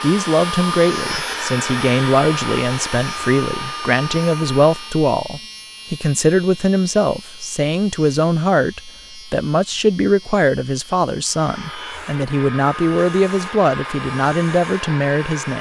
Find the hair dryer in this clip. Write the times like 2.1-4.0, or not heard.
0.0-5.0, 11.2-15.5.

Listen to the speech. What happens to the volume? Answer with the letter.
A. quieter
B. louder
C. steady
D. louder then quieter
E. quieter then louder
C.